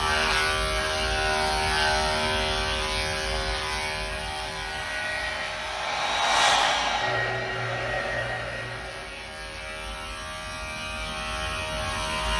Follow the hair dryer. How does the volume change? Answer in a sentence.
The loudness of the hair dryer goes up, then down.